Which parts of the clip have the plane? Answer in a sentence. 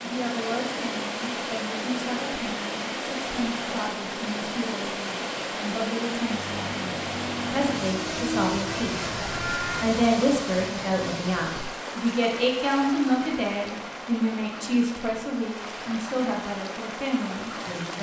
You can hear the plane from 6.3 to 10.0 s.